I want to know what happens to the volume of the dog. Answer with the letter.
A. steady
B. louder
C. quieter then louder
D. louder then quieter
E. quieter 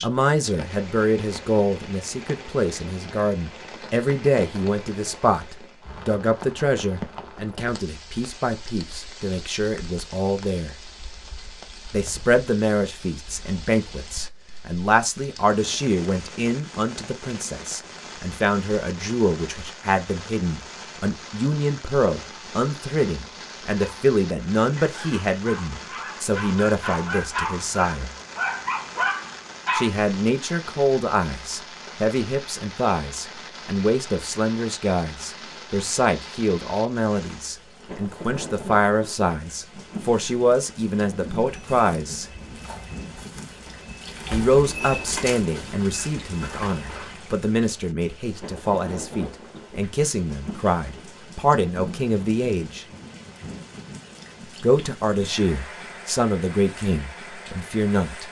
B.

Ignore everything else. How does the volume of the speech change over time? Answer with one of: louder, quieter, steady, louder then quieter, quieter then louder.
steady.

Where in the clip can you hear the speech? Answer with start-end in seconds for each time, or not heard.
0.0-10.8, 11.9-28.1, 29.7-42.2, 44.3-52.9, 54.6-58.2.